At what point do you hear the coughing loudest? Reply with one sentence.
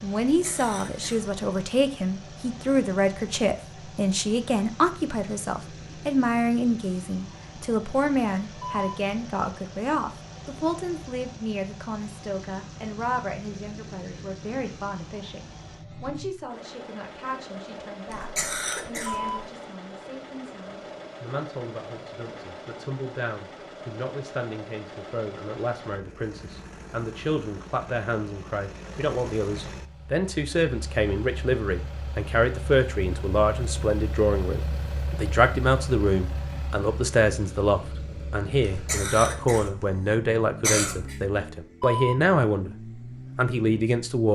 The loudest moment of the coughing is at 41 seconds.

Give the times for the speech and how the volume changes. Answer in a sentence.
The speech can be heard from 0.0 to 44.3 s, getting quieter then louder.